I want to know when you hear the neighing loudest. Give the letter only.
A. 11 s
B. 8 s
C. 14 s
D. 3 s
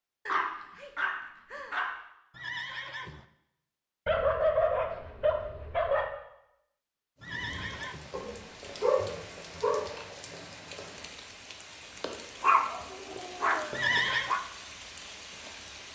C.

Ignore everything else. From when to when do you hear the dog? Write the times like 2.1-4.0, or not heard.
0.2-1.9, 4.0-6.0, 8.1-10.1, 12.4-14.4.